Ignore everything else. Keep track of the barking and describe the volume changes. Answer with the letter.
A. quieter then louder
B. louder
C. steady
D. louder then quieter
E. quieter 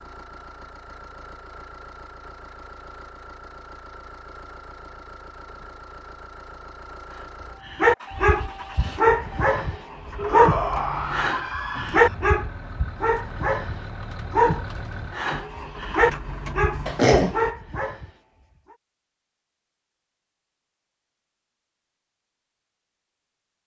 C.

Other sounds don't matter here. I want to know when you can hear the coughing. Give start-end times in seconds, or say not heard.
16.9-17.4.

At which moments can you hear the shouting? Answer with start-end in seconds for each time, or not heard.
10.2-12.2.